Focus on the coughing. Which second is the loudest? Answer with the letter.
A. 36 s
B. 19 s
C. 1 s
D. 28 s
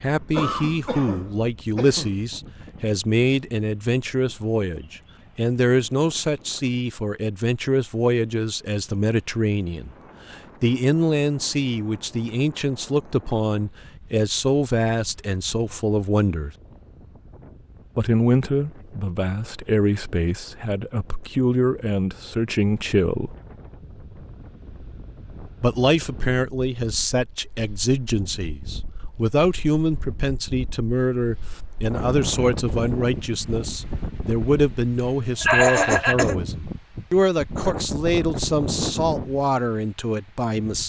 A.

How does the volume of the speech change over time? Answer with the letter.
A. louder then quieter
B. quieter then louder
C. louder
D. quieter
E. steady
E.